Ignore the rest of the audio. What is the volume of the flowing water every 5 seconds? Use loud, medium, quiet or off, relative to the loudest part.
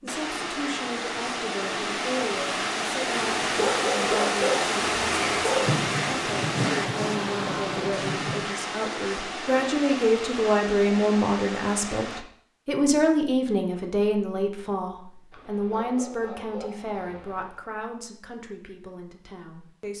loud, loud, medium, off.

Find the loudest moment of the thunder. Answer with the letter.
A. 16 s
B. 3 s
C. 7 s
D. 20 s
C.